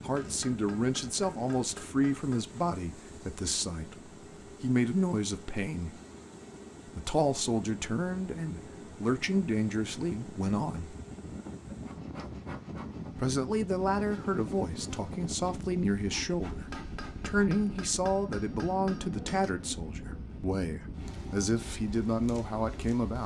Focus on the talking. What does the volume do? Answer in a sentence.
The loudness of the talking stays about the same.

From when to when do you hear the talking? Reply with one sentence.
The talking can be heard from 0.0 to 6.0 s, from 6.8 to 10.9 s and from 13.2 to 23.2 s.